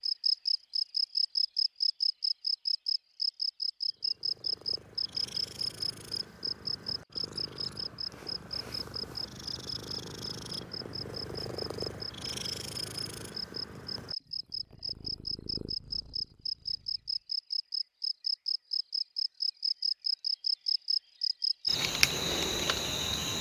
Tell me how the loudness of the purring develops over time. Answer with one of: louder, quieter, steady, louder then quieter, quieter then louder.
louder then quieter.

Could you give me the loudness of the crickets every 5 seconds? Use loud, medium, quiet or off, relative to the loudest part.
loud, medium, medium, loud, loud.